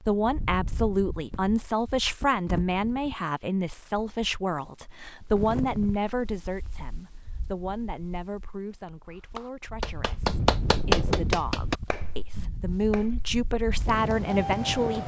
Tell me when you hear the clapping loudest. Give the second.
11 s.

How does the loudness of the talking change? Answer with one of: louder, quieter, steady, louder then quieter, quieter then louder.
quieter then louder.